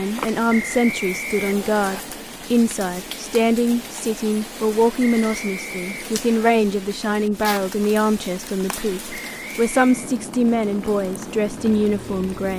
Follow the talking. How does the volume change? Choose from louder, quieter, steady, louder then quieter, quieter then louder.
steady.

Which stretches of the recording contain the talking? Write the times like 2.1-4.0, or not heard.
0.0-12.5.